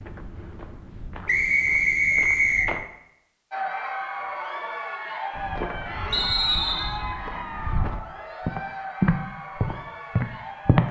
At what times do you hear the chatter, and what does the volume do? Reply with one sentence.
The chatter can be heard from 3.5 to 10.8 s, getting quieter.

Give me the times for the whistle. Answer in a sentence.
The whistle can be heard from 1.2 to 2.7 s and from 6.1 to 7.0 s.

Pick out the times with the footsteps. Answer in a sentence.
The footsteps can be heard from 0.0 to 2.9 s and from 5.3 to 10.8 s.